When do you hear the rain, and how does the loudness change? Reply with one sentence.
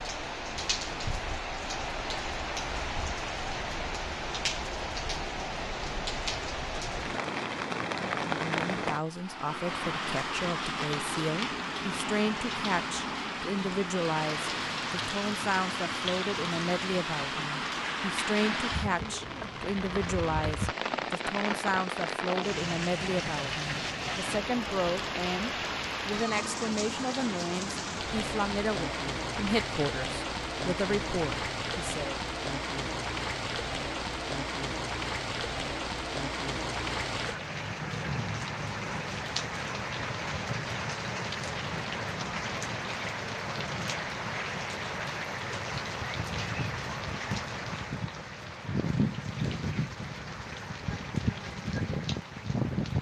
You can hear the rain from 0.0 to 52.9 s, at a steady volume.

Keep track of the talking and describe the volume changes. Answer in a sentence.
The volume of the talking stays about the same.